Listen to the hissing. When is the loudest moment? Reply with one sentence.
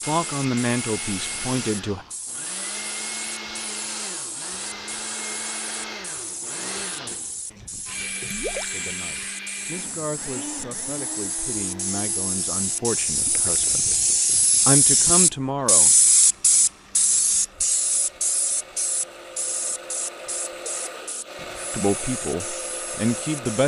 The loudest moment of the hissing is at 16 seconds.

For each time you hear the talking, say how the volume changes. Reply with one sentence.
You can hear the talking briefly from 0.1 to 2.0 s; from 8.6 to 13.8 s, getting louder; briefly from 14.7 to 15.9 s; and briefly from 21.7 to 23.6 s.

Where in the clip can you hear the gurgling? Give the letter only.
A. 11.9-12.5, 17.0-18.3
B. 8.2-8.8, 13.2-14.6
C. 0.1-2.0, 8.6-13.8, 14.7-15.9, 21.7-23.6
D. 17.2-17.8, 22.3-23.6
B.